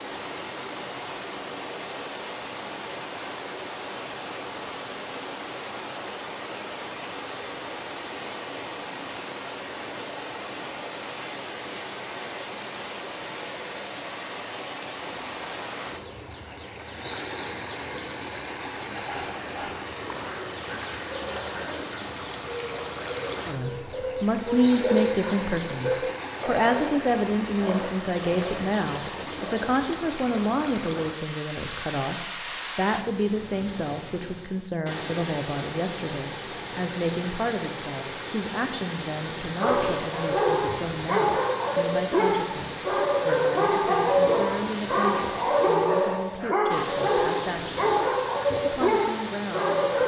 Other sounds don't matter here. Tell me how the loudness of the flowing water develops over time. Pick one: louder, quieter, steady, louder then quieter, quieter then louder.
steady.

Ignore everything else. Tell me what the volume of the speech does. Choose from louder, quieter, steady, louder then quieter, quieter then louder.
quieter.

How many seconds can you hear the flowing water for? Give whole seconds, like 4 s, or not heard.
50 s.